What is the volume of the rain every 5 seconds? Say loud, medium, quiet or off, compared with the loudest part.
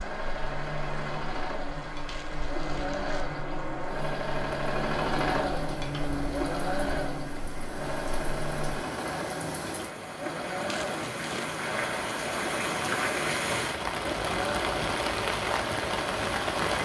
medium, medium, loud, loud.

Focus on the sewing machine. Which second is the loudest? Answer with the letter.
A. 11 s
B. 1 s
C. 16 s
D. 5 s
D.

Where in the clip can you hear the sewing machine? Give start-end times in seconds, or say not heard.
0.0-16.7.